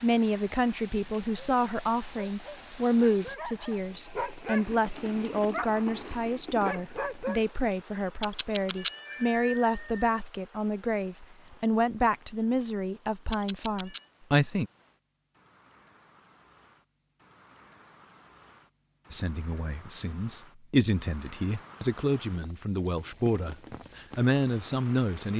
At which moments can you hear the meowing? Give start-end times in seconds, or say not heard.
8.2-10.2, 13.3-14.1.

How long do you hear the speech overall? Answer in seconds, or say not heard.
21 s.